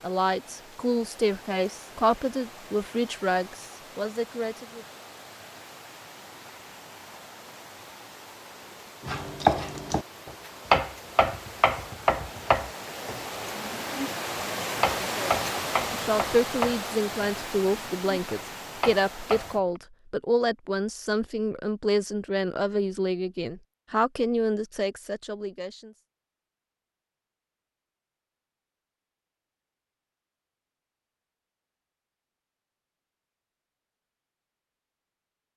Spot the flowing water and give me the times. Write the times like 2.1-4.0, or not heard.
0.0-19.6.